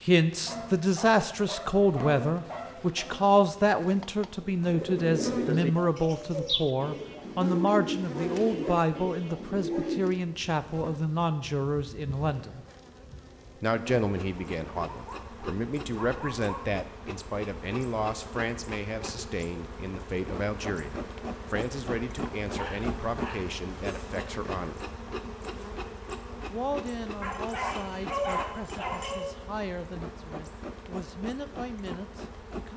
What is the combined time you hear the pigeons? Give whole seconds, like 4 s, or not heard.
6 s.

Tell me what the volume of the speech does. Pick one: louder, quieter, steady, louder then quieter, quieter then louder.
quieter.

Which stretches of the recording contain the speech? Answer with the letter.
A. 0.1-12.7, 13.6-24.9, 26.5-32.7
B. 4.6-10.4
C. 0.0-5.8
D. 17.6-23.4
A.